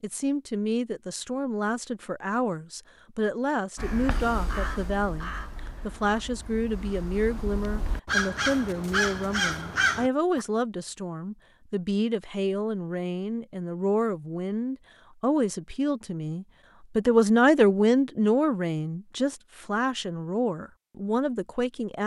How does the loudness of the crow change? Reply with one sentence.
The volume of the crow goes down, then up.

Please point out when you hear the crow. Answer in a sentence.
The crow can be heard from 3.8 to 10.4 s.